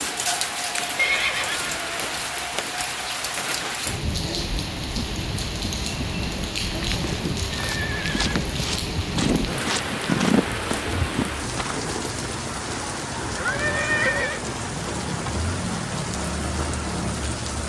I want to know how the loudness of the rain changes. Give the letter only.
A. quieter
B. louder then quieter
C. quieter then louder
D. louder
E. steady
E.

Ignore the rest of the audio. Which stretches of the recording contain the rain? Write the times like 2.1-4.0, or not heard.
0.0-17.6.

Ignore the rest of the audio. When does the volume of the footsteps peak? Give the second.
10 s.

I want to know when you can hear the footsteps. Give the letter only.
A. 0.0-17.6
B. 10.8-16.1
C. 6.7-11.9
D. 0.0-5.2
C.